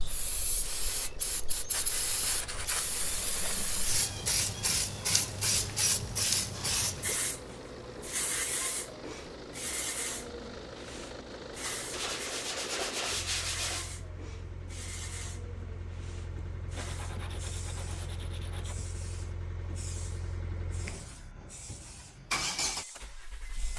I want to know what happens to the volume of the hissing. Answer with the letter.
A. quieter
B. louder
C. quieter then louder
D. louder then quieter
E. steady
A.